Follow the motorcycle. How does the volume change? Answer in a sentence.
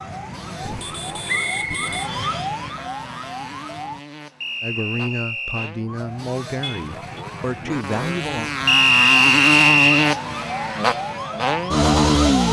The volume of the motorcycle goes up.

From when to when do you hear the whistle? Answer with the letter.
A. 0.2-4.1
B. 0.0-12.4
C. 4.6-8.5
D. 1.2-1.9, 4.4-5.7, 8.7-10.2
D.